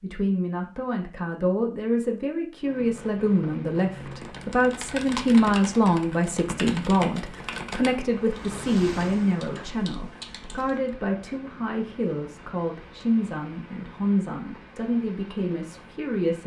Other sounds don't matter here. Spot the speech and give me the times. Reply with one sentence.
The speech can be heard from 0.0 to 16.4 s.